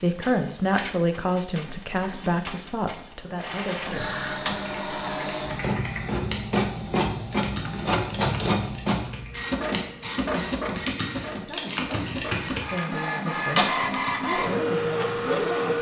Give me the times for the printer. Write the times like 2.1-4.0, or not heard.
0.0-15.7.